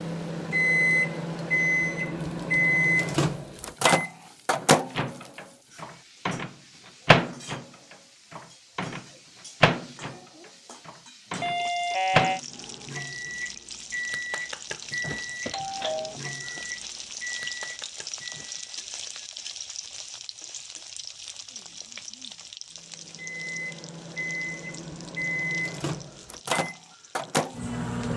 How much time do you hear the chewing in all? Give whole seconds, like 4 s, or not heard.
not heard.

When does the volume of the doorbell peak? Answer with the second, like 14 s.
12 s.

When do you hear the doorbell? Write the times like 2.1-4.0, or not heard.
11.4-12.4, 15.4-16.1.